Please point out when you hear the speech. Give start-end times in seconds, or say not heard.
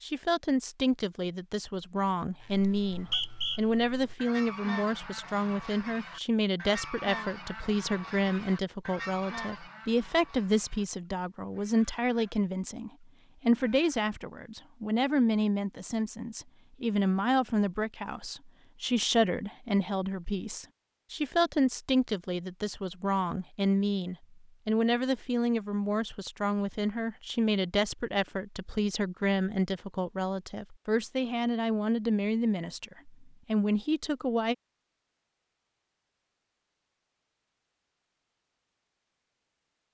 0.0-34.5.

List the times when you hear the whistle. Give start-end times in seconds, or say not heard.
2.7-3.6.